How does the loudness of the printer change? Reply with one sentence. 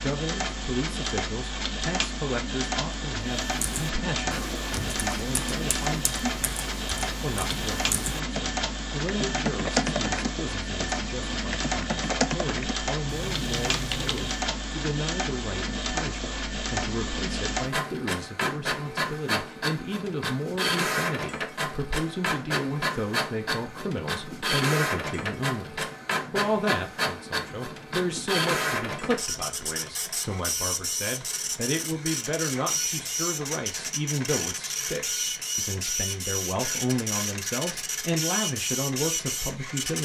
The loudness of the printer stays about the same.